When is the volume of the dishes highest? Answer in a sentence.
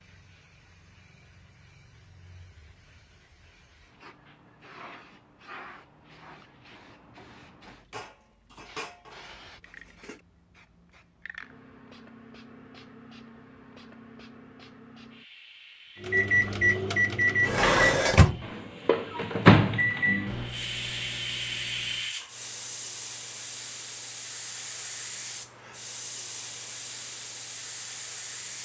The loudest moment of the dishes is at 18 seconds.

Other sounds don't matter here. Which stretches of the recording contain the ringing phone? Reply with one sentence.
You can't hear the ringing phone here.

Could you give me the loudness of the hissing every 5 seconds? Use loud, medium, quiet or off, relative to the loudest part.
quiet, quiet, quiet, quiet, loud, loud.